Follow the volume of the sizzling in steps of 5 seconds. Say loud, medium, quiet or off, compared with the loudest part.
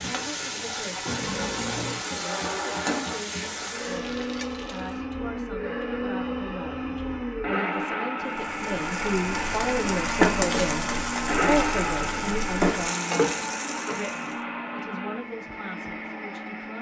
medium, medium, loud, off.